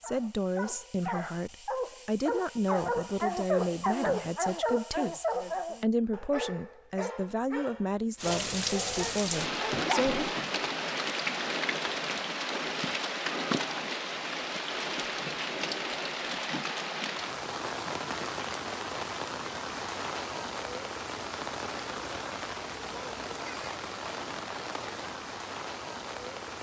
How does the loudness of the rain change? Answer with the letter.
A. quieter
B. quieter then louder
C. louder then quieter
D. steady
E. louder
A.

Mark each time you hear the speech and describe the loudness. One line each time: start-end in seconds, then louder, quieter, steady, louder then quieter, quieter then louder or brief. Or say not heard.
0.0-10.2 steady.